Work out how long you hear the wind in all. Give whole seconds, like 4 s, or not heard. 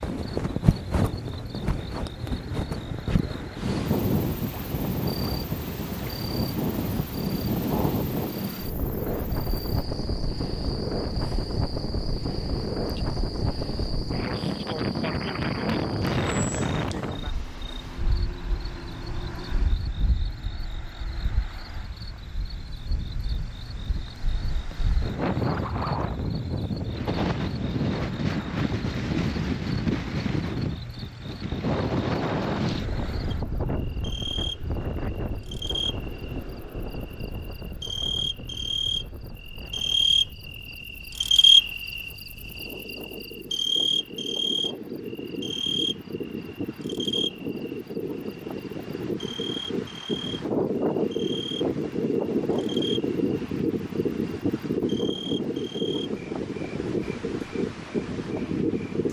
59 s.